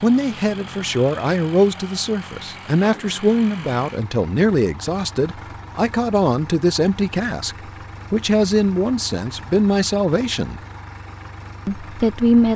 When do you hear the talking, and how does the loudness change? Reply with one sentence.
The talking can be heard from 0.0 to 10.6 s, at a steady volume; and briefly from 11.7 to 12.5 s.